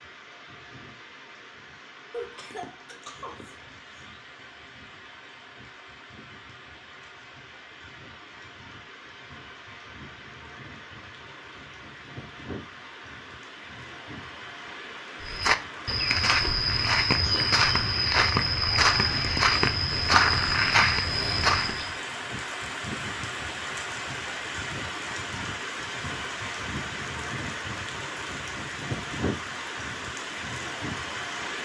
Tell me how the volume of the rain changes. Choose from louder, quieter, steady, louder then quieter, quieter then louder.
louder.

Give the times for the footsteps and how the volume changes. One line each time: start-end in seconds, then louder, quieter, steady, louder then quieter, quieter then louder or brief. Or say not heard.
15.2-21.9 steady.